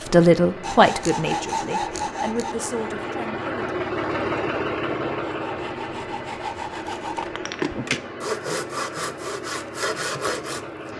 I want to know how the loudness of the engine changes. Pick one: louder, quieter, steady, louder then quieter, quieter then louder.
louder then quieter.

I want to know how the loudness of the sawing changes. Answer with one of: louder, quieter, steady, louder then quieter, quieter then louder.
quieter then louder.